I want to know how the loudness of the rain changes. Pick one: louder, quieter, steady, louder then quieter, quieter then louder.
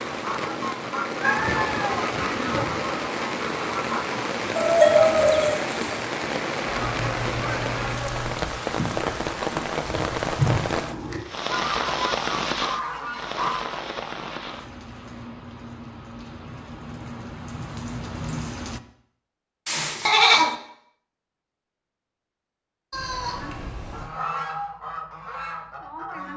quieter.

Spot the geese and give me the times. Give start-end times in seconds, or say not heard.
0.1-4.2, 6.6-13.8, 23.2-26.3.